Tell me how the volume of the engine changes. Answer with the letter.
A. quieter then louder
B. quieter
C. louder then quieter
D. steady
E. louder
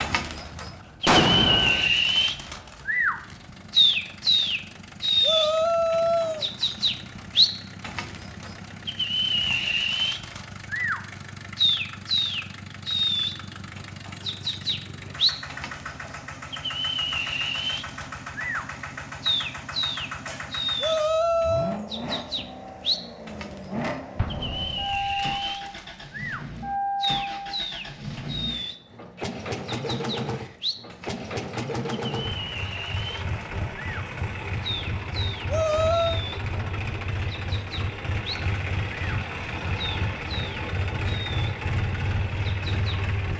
E.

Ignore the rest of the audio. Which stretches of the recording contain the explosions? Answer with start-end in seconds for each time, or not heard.
1.1-1.9, 24.1-25.4.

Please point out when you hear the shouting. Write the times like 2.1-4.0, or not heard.
5.2-6.5, 20.8-21.8, 35.5-36.2.